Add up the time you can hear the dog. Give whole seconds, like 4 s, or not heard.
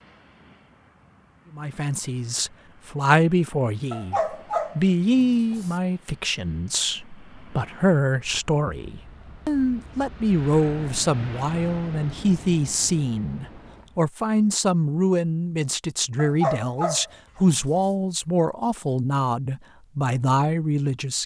4 s.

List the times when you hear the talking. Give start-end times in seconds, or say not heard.
1.5-21.2.